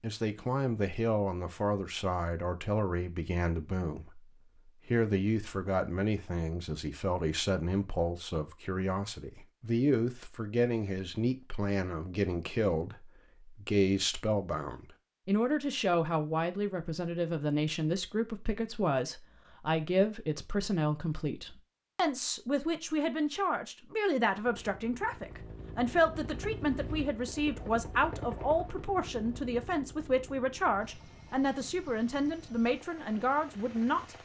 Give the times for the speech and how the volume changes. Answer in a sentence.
The speech can be heard from 0.0 to 34.2 s, at a steady volume.